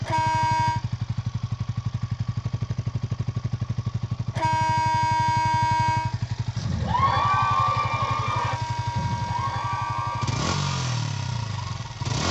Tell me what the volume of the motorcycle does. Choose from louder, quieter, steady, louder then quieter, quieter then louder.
steady.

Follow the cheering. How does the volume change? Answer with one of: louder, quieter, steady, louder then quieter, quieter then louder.
quieter.